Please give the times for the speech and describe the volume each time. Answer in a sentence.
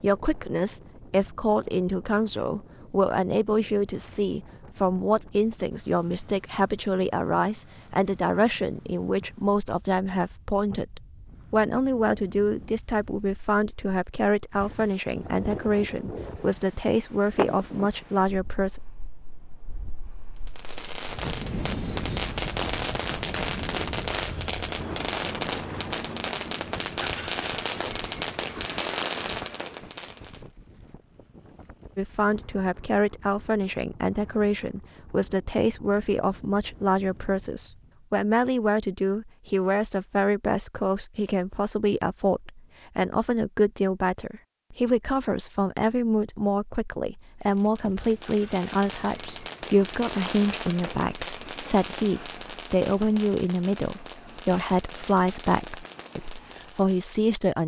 The speech can be heard from 0.0 to 18.8 s, at a steady volume; and from 31.9 to 57.6 s, at a steady volume.